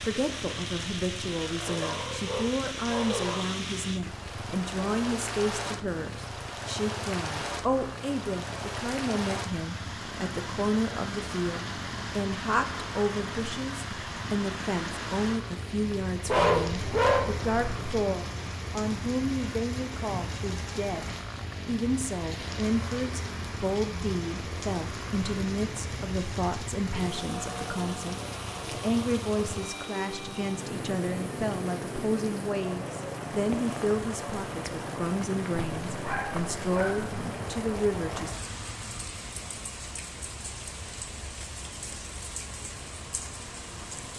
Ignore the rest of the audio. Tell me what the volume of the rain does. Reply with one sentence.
The loudness of the rain stays about the same.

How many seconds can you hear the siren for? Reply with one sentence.
You can't hear the siren here.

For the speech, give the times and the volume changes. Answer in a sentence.
The speech can be heard from 0.0 to 38.4 s, at a steady volume.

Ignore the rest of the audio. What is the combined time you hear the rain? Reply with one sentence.
The rain can be heard for 44 seconds in total.